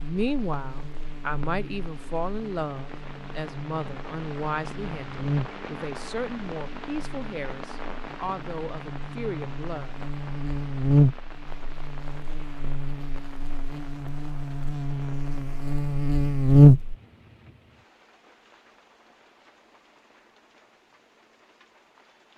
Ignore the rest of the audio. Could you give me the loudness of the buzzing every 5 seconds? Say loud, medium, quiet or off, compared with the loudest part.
quiet, quiet, medium, loud, off.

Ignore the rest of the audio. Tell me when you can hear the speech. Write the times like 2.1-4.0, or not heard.
0.0-9.9.